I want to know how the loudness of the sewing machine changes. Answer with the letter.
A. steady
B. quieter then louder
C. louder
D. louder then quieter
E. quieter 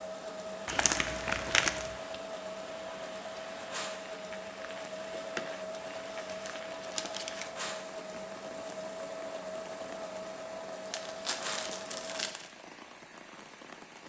A.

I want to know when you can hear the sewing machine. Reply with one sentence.
You can hear the sewing machine from 0.0 to 12.3 s.